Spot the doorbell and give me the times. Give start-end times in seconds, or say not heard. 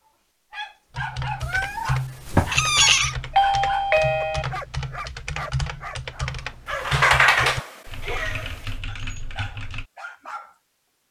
3.4-4.5.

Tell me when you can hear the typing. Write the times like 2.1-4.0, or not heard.
0.9-9.8.